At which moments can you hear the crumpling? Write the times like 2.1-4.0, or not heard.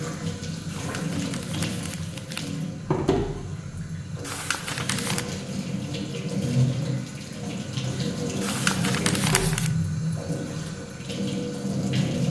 0.9-2.5, 4.2-5.2, 8.4-9.8.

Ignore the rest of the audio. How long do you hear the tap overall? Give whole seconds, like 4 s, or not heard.
12 s.